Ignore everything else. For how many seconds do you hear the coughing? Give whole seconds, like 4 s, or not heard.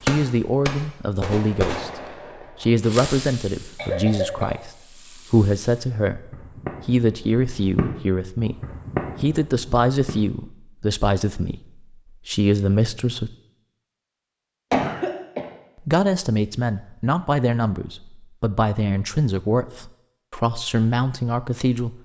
2 s.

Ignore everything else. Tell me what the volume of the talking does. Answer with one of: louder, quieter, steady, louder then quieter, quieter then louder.
steady.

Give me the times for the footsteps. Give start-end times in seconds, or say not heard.
not heard.